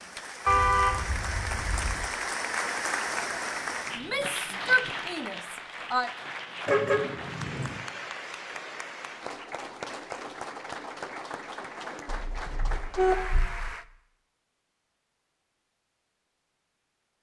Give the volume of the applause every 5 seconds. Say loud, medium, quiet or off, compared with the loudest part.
loud, medium, medium, off.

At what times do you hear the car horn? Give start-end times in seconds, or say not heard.
0.5-2.1, 6.7-7.8, 12.1-13.8.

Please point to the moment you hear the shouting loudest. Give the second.
5 s.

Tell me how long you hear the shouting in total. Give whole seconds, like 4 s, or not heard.
2 s.